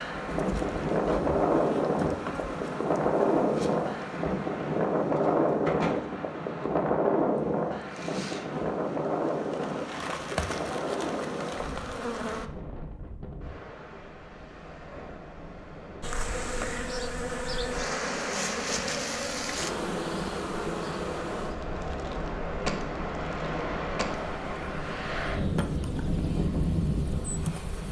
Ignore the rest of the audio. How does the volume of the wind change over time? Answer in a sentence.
The volume of the wind goes down, then up.